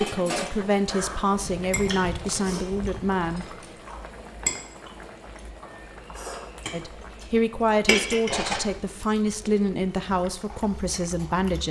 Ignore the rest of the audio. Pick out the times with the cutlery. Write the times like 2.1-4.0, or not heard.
1.4-3.5, 8.2-8.8.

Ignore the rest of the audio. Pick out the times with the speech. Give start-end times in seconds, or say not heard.
0.0-3.5, 6.7-11.6.